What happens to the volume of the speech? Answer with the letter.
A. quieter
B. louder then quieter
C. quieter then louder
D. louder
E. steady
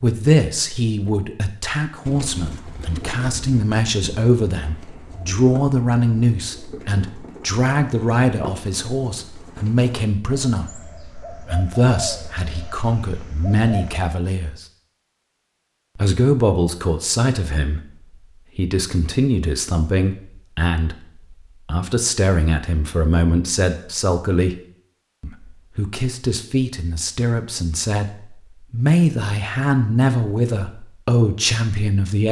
E.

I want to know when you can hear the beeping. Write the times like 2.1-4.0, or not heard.
not heard.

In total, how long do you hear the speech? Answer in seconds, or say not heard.
30 s.